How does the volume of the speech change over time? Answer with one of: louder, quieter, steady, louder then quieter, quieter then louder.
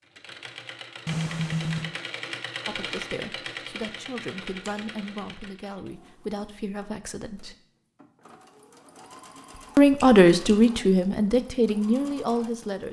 louder then quieter.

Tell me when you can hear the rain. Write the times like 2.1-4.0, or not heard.
not heard.